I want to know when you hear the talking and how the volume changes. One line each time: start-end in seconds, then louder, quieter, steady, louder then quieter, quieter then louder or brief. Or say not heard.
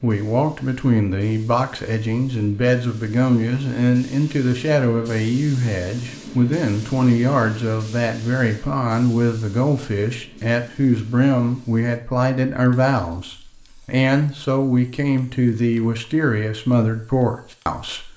0.0-18.1 steady.